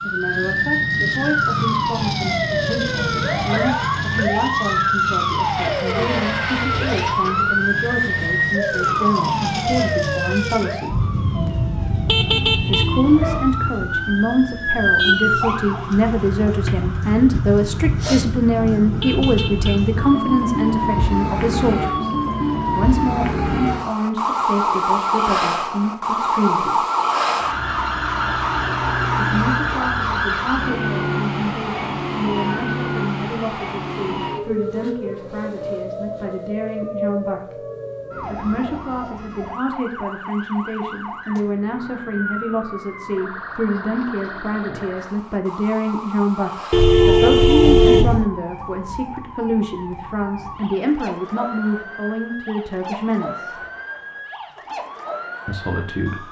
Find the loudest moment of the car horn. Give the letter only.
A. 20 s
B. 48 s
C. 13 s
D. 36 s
B.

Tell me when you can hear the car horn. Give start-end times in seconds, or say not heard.
12.1-13.4, 19.0-20.0, 46.7-48.3.